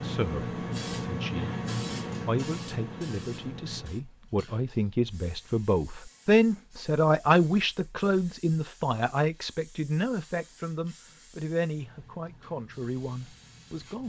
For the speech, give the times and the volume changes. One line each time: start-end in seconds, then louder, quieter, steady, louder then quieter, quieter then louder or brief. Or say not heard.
0.0-1.6 brief
2.2-14.0 louder then quieter.